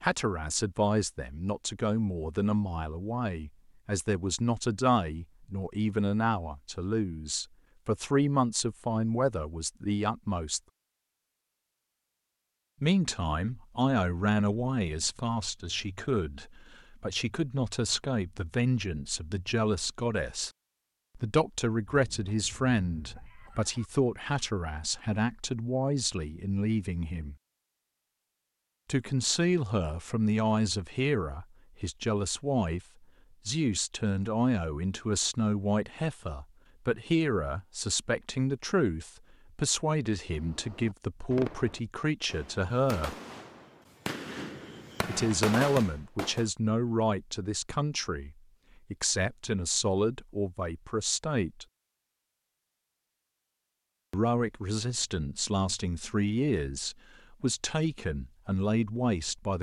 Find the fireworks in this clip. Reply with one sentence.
The fireworks can be heard from 40.2 to 46.5 s.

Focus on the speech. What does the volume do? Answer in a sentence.
The loudness of the speech stays about the same.